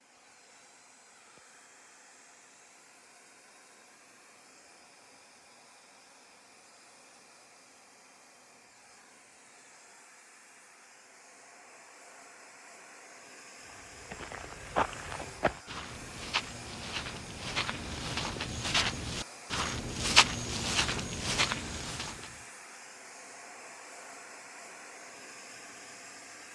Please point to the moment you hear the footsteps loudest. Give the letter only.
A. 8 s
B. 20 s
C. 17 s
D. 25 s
B.